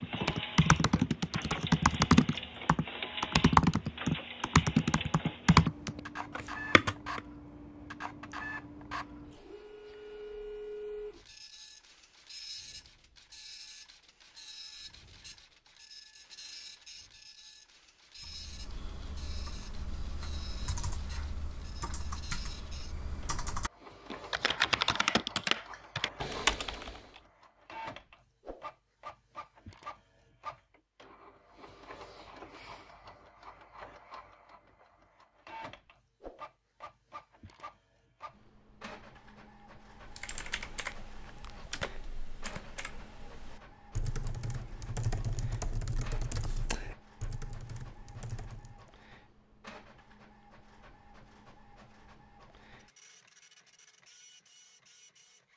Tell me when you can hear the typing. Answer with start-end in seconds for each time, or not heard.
0.0-7.2, 18.1-27.2, 40.0-48.9.